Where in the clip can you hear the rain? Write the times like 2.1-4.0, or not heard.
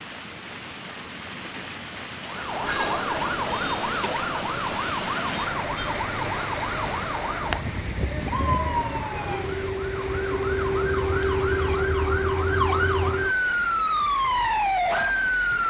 0.0-15.6.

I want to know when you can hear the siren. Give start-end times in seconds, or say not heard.
2.2-15.6.